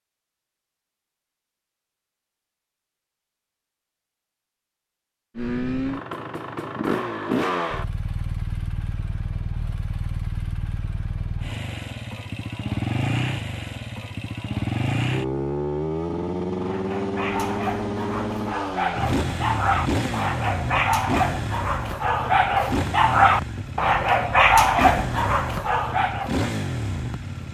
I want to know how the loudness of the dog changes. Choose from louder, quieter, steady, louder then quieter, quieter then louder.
louder.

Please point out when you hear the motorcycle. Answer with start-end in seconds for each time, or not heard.
5.3-27.4.